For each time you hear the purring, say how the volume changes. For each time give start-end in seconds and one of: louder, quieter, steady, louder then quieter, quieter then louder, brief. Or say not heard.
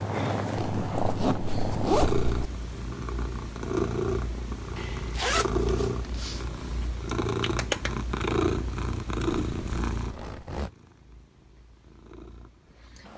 0.0-13.1 quieter.